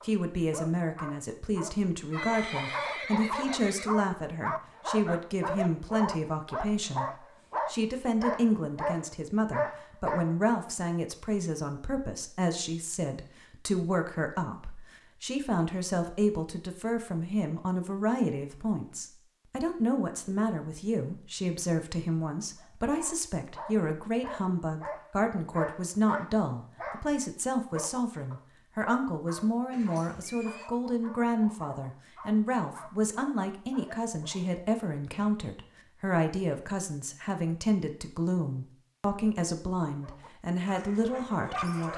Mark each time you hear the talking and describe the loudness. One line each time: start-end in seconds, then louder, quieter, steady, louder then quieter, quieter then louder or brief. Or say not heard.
0.0-41.9 steady.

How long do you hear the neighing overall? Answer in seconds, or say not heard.
3 s.